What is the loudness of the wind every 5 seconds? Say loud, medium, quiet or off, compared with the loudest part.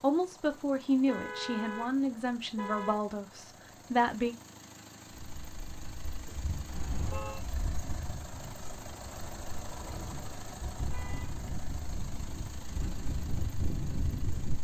off, medium, loud.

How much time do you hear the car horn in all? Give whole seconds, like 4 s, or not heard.
3 s.